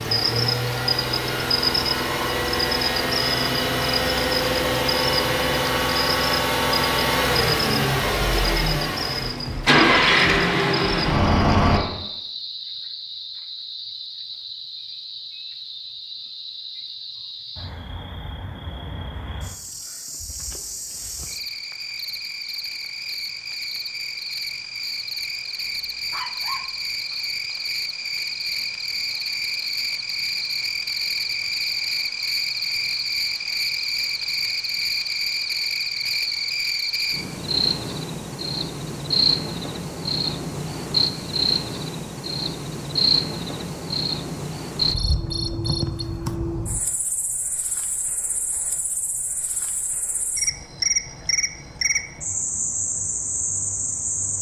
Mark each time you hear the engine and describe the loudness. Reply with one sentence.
The engine can be heard from 0.0 to 11.8 s, getting louder.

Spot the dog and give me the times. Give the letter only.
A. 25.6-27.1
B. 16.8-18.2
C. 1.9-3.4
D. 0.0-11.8
A.